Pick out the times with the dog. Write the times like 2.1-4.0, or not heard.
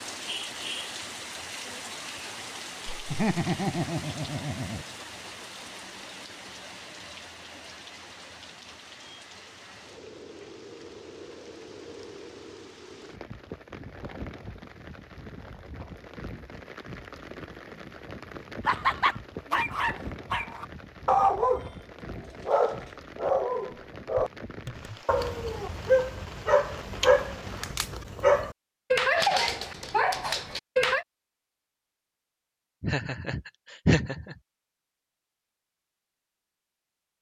19.5-31.1.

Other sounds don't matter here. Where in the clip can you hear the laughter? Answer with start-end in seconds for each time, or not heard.
2.9-4.8, 18.6-19.1, 32.8-34.4.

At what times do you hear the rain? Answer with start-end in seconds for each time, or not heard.
0.0-27.9.